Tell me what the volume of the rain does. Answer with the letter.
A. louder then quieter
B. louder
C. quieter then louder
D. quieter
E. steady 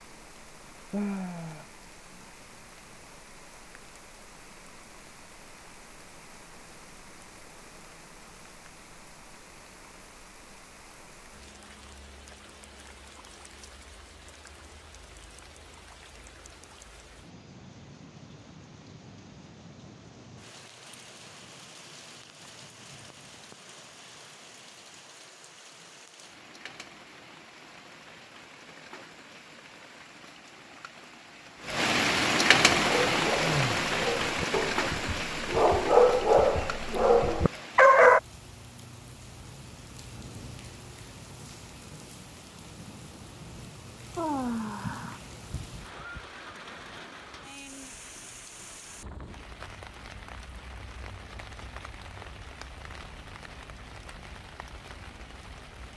A.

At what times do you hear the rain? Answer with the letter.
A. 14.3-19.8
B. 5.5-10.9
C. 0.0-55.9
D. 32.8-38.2
C.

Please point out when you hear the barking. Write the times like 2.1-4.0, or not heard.
32.8-38.2.